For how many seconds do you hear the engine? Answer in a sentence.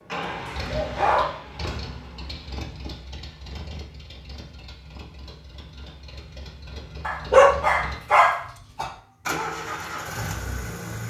You can hear the engine for 11 seconds altogether.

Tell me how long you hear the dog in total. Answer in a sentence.
You can hear the dog for 3 seconds altogether.